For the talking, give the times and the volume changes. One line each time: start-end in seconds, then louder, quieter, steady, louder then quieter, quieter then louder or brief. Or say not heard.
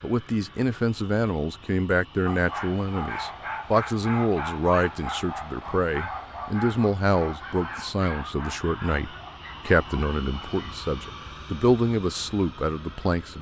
0.0-13.3 steady.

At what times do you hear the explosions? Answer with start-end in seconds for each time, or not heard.
not heard.